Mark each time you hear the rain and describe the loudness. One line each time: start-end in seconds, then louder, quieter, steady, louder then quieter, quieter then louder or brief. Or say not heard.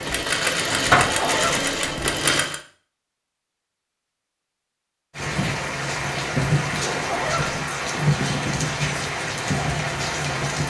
5.2-10.6 steady.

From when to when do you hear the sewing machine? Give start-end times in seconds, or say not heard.
0.0-2.6.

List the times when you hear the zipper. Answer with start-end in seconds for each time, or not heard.
0.9-2.1, 6.8-7.7.